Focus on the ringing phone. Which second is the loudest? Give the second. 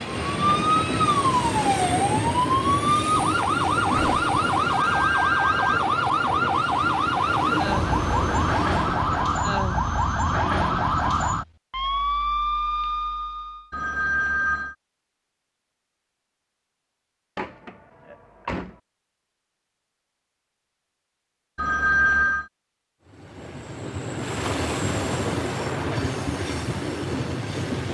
22 s.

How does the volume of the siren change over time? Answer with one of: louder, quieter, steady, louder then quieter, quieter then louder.
steady.